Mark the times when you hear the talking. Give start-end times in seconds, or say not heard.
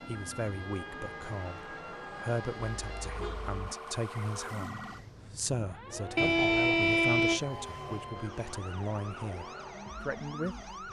0.1-10.8.